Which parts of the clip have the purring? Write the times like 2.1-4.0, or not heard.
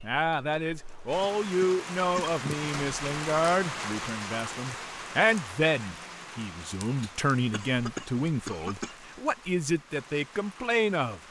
not heard.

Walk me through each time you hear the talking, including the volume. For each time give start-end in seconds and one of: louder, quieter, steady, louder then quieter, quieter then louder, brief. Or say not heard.
0.0-11.2 steady.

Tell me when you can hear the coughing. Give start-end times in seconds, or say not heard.
1.2-2.7, 7.5-8.9.